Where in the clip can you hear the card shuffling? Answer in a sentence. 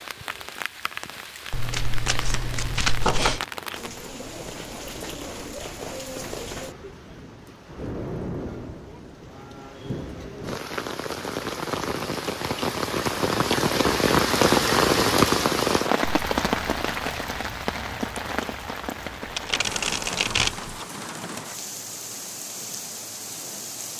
The card shuffling can be heard from 1.5 to 3.5 s and from 19.2 to 20.7 s.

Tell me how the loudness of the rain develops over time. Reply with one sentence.
The volume of the rain goes up, then down.